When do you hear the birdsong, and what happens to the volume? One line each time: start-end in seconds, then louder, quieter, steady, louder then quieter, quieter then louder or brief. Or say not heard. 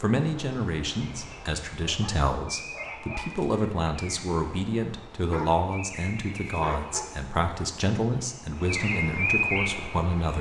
0.0-10.3 louder.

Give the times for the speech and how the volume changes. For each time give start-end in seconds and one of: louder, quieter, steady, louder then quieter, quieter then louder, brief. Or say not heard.
0.0-10.3 steady.